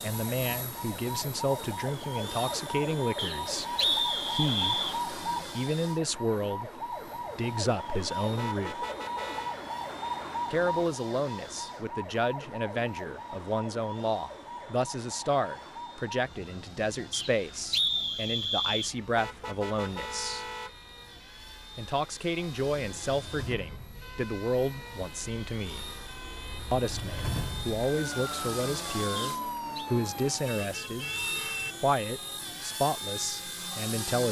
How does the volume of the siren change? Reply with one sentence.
The volume of the siren goes down, then up.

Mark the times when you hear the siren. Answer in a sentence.
The siren can be heard from 0.0 to 30.5 s.